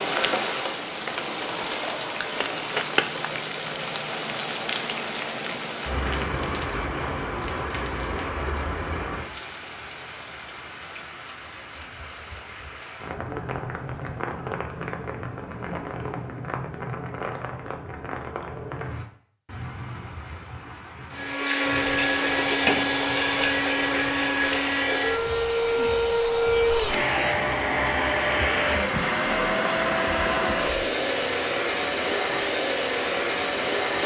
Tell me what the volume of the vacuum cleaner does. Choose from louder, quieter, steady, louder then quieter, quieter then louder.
steady.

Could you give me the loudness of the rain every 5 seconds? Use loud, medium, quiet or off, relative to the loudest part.
loud, loud, medium, medium, quiet, quiet, quiet.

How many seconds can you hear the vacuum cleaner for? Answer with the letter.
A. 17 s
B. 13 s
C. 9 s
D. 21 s
B.